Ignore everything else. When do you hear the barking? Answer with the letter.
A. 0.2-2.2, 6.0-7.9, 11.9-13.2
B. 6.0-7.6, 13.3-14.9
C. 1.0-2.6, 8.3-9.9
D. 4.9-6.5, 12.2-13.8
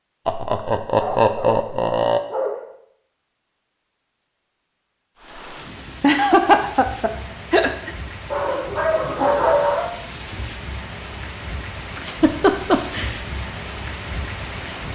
C.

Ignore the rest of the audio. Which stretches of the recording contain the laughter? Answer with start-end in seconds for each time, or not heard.
0.2-2.2, 6.0-7.9, 11.9-13.2.